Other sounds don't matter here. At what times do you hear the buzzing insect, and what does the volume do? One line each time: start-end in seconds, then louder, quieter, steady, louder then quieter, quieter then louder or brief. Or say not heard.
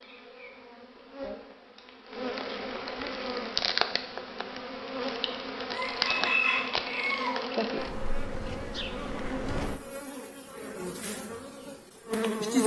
0.0-12.6 louder then quieter.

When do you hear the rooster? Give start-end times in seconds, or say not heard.
5.7-7.3.